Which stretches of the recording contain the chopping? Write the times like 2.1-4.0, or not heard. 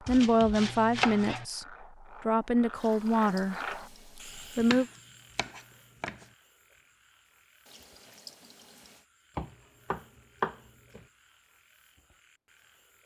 0.1-1.4, 4.6-6.2, 9.3-11.1.